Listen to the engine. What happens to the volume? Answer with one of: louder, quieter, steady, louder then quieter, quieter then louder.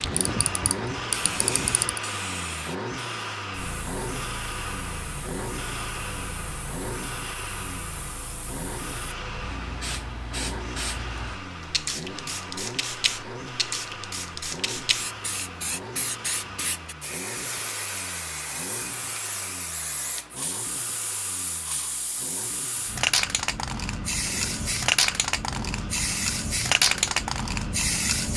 quieter.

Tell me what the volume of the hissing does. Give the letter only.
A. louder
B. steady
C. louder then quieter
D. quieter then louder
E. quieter
A.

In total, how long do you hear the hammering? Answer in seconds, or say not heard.
not heard.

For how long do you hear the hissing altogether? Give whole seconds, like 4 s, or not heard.
28 s.